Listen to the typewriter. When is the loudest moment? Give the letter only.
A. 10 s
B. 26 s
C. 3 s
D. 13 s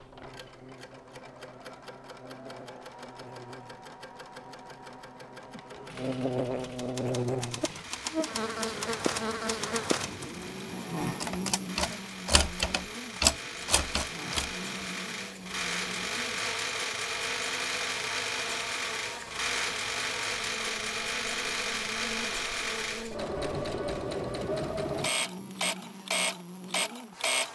D.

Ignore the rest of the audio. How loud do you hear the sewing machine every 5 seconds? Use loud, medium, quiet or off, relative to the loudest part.
quiet, quiet, medium, loud, loud, loud.